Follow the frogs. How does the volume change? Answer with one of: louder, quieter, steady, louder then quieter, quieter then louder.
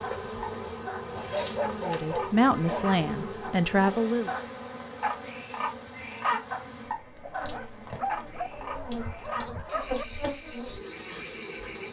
louder then quieter.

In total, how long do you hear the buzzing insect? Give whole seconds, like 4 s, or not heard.
12 s.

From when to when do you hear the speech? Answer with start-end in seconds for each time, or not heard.
1.8-4.3.